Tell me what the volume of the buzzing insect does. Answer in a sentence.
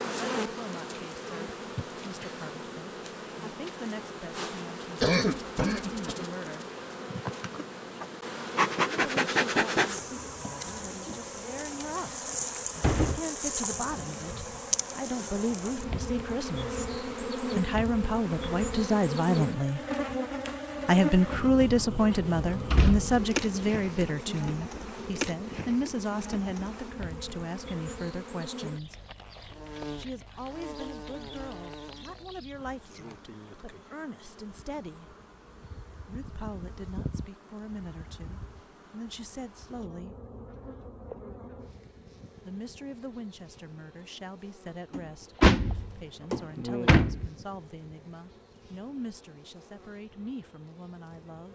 The loudness of the buzzing insect goes down.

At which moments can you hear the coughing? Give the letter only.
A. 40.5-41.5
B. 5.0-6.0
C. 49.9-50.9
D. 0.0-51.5
B.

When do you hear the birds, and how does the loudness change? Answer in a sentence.
The birds can't be heard in this clip.